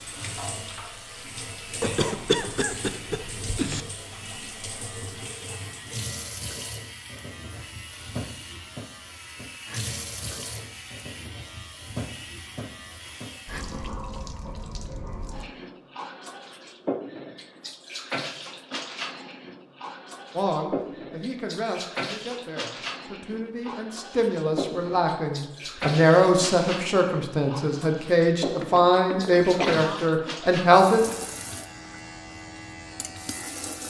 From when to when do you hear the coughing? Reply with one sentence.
You can hear the coughing from 1.8 to 3.9 s and from 28.6 to 30.1 s.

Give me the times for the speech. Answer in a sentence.
The speech can be heard from 20.4 to 31.1 s.